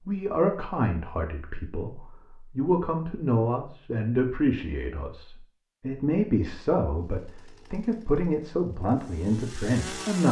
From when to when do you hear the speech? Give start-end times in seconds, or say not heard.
0.1-10.2.